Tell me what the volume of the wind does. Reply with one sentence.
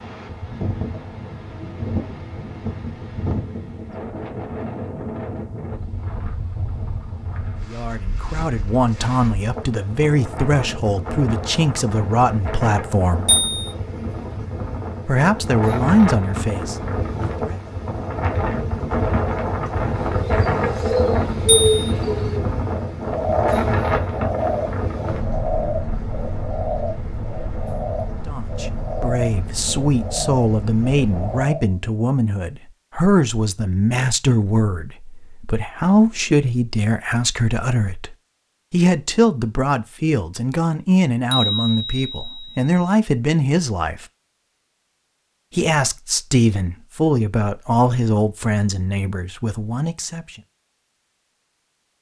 The volume of the wind goes up, then down.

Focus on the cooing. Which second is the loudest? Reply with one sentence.
The volume of the cooing peaks at 22 seconds.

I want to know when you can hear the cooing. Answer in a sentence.
You can hear the cooing from 20.1 to 31.9 s.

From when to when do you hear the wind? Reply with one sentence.
The wind can be heard from 0.0 to 31.5 s.